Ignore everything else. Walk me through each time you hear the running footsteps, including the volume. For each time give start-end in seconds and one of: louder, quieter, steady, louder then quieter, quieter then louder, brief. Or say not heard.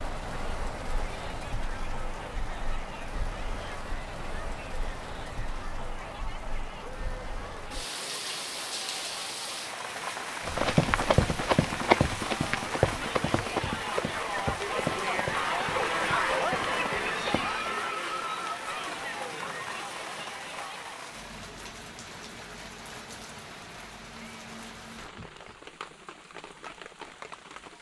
10.4-17.7 quieter.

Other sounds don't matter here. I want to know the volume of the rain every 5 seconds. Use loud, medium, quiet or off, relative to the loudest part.
loud, loud, loud, loud, medium, medium.